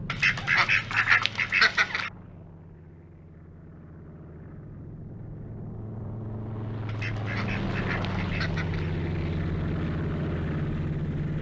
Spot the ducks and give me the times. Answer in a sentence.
You can hear the ducks from 0.1 to 2.1 s and from 6.8 to 8.9 s.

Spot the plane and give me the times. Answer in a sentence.
The plane can be heard from 0.0 to 11.3 s.